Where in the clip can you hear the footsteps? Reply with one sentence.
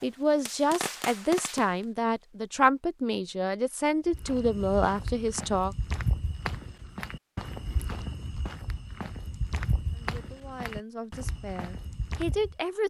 You can hear the footsteps from 4.0 to 12.6 s.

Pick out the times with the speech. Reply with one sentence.
The speech can be heard from 0.0 to 5.8 s and from 9.9 to 12.8 s.